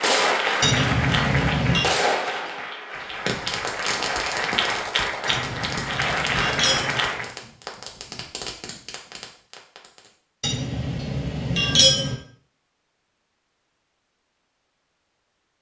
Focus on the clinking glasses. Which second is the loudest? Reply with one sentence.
The loudest moment of the clinking glasses is at 12 seconds.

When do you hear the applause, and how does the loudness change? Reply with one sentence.
You can hear the applause from 0.0 to 7.3 s, getting quieter then louder.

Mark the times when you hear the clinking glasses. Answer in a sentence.
The clinking glasses can be heard from 0.6 to 1.9 s, from 5.2 to 7.0 s and from 10.4 to 12.2 s.